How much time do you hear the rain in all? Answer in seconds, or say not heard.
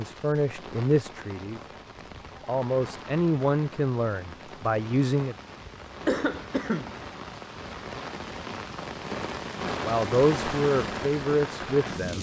12 s.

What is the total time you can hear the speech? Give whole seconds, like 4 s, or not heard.
7 s.